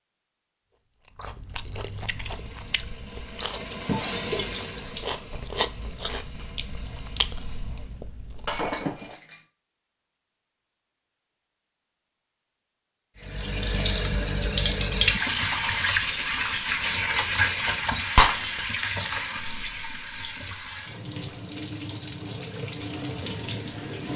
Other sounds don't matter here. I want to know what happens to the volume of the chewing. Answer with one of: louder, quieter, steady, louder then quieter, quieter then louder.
louder then quieter.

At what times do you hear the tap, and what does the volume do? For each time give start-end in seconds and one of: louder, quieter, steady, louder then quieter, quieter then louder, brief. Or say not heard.
2.1-8.0 louder then quieter
13.2-24.1 quieter.